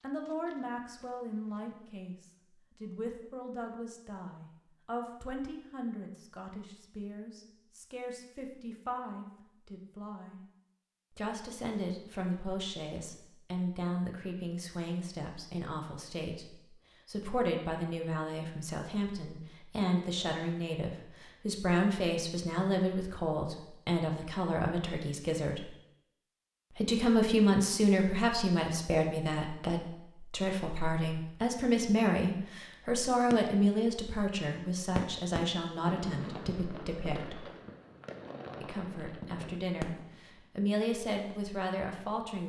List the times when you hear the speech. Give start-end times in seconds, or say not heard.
0.0-10.4, 11.1-25.6, 26.8-37.5, 38.6-42.4.